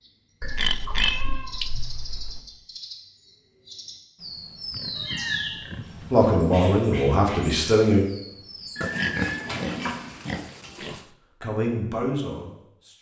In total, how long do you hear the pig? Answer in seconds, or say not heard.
5 s.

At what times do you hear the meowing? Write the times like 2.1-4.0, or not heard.
0.4-2.4, 5.0-5.5, 8.8-10.1.